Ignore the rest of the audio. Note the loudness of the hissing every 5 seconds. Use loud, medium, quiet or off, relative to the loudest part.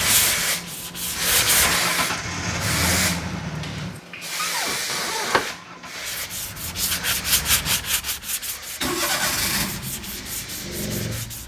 loud, medium, quiet.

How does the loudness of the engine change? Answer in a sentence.
The volume of the engine goes down, then up.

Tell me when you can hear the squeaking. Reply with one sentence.
You can hear the squeaking from 4.3 to 5.5 s.